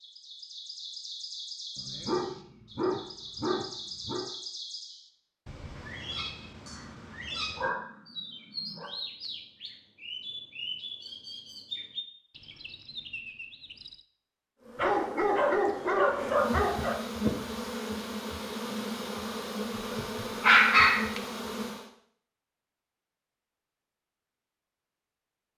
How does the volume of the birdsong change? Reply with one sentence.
The loudness of the birdsong stays about the same.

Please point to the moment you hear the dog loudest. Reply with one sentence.
The loudest moment of the dog is at 21 seconds.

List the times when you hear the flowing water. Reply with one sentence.
The flowing water can't be heard in this clip.